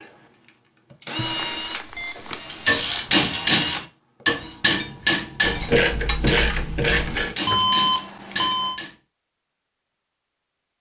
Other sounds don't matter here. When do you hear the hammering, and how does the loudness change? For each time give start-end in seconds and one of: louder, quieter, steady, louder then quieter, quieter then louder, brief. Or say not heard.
2.6-8.9 quieter.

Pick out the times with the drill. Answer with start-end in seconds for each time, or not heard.
0.0-4.6.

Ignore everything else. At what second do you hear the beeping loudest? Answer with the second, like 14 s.
8 s.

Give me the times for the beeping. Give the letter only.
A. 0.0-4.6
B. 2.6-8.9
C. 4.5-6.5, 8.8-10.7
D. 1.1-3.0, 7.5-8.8
D.